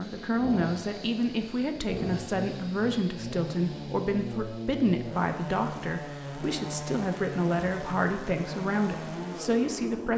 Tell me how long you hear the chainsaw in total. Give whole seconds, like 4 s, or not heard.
10 s.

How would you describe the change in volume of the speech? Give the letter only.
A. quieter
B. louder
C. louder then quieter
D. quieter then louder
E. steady
E.